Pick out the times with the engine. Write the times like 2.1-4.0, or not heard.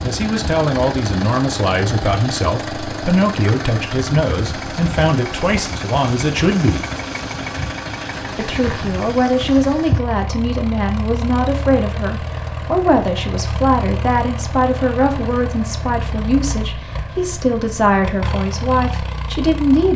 0.0-19.9.